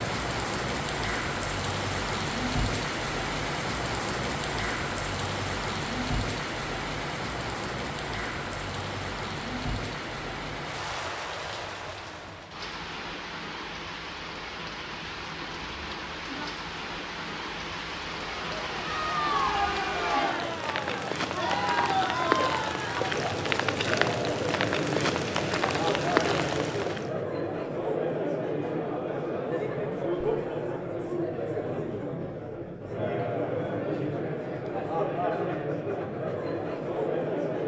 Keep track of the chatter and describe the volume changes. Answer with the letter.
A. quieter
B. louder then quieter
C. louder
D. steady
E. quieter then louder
D.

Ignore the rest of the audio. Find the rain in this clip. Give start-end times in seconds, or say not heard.
0.0-27.1.